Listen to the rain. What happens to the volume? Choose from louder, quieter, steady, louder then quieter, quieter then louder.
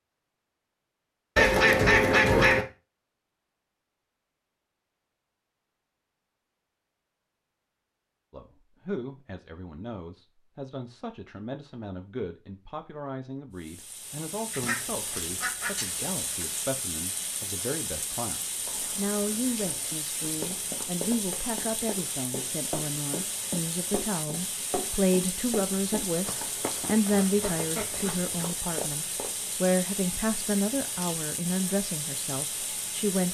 steady.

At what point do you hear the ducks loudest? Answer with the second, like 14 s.
2 s.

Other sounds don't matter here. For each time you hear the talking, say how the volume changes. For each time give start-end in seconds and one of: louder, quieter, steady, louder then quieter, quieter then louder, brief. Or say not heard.
8.3-33.2 louder.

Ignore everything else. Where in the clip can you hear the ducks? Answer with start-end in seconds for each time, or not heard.
1.4-2.6, 14.5-16.4, 27.1-28.4.